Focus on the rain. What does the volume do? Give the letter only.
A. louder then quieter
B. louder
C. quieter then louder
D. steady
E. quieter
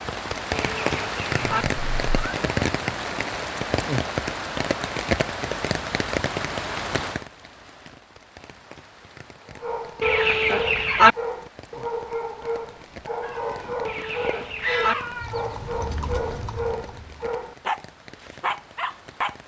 E.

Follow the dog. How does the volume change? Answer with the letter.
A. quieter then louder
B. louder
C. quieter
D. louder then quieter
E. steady
E.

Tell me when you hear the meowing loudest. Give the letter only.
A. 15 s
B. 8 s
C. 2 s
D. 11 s
A.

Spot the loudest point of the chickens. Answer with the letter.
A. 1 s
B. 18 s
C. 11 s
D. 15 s
C.